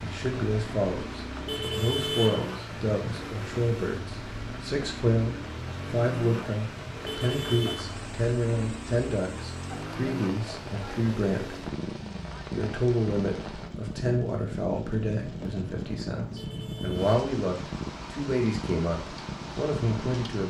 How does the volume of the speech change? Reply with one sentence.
The volume of the speech stays about the same.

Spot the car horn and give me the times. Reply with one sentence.
You can hear the car horn from 1.4 to 3.2 s, from 7.0 to 7.8 s and from 16.4 to 17.1 s.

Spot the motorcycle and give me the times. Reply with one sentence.
You can hear the motorcycle from 0.0 to 20.4 s.